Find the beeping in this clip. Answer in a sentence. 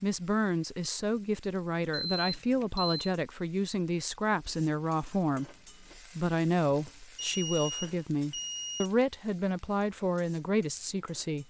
You can hear the beeping from 2.1 to 3.1 s and from 7.2 to 8.9 s.